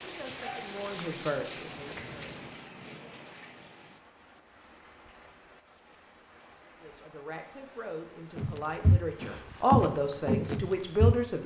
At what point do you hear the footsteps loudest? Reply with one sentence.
The volume of the footsteps peaks at 10 seconds.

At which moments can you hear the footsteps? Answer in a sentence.
The footsteps can be heard from 0.0 to 2.5 s and from 8.3 to 11.2 s.